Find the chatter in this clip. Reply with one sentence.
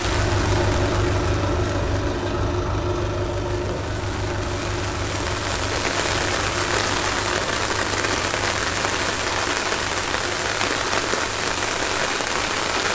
You can't hear the chatter here.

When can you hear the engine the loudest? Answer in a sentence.
The volume of the engine peaks at 1 second.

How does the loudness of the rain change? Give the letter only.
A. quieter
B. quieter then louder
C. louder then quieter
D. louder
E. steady
D.